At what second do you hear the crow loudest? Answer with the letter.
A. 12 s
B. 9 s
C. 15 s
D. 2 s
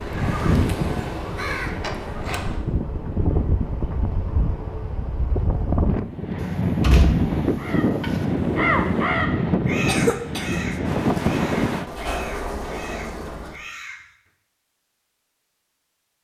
B.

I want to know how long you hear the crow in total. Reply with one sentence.
You can hear the crow for 9 seconds altogether.